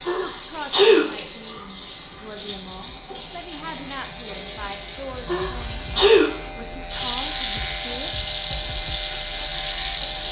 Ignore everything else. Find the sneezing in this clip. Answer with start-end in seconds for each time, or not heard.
0.1-1.1, 5.2-6.3.